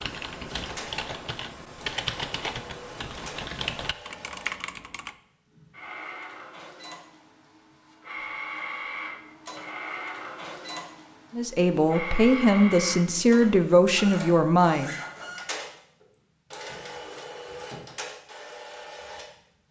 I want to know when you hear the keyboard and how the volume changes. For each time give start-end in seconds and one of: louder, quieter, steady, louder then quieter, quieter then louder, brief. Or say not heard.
0.0-5.2 steady.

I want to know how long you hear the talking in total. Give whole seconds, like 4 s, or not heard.
4 s.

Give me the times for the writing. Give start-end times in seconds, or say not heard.
not heard.